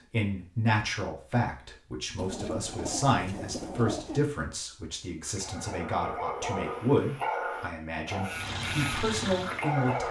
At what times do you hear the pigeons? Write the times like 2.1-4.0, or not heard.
2.1-4.2.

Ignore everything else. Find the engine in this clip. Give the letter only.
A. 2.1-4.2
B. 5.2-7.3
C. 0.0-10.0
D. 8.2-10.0
D.